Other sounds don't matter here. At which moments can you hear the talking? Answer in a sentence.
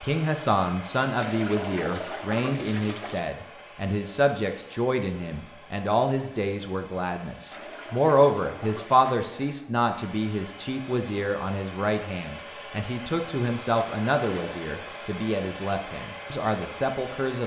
The talking can be heard from 0.0 to 17.4 s.